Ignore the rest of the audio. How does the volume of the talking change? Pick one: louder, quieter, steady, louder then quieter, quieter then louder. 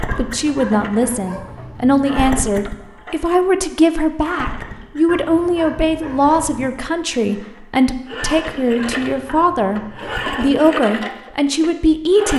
steady.